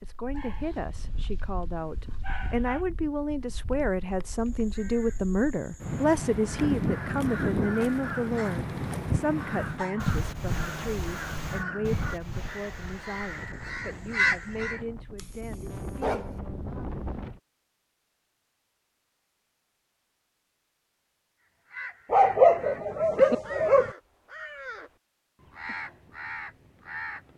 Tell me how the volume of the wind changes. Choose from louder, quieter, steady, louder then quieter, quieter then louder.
louder then quieter.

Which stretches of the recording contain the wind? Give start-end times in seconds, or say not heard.
0.0-17.4.